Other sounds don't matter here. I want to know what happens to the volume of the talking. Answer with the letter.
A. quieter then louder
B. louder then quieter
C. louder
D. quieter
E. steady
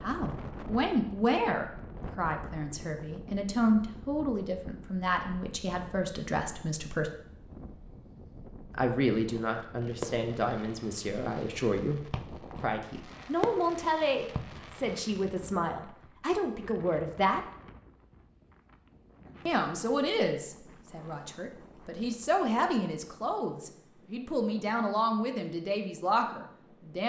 E.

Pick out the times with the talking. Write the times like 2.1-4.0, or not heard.
0.0-7.1, 8.7-17.4, 19.4-27.0.